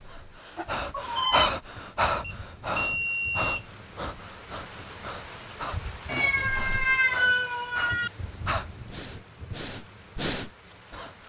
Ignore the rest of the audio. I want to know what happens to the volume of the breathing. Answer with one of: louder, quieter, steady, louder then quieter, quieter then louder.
quieter then louder.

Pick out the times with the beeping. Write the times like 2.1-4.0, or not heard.
2.2-3.6.